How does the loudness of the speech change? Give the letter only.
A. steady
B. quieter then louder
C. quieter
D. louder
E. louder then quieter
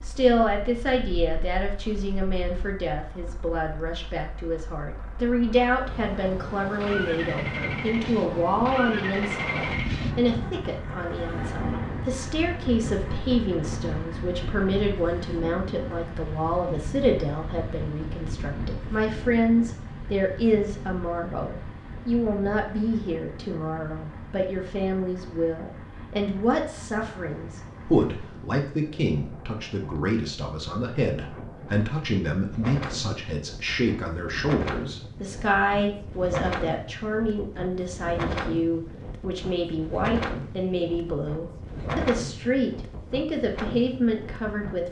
A.